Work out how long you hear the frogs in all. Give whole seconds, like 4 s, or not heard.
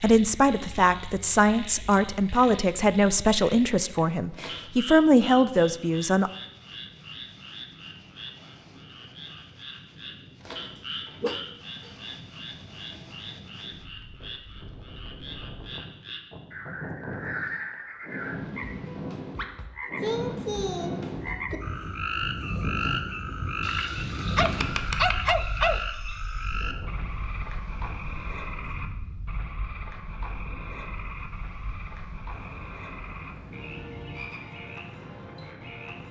36 s.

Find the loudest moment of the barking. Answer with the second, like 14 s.
25 s.